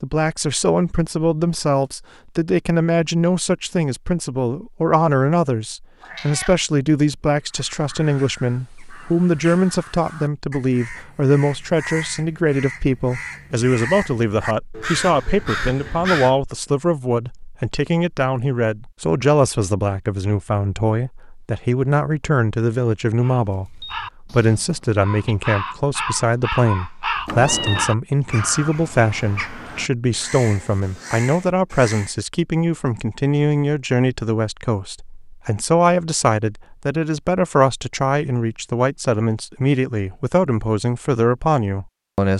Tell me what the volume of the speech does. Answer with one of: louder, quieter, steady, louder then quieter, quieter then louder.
steady.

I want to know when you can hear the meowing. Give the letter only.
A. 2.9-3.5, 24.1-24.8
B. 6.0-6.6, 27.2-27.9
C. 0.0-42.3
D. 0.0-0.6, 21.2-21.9
B.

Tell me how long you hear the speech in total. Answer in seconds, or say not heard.
42 s.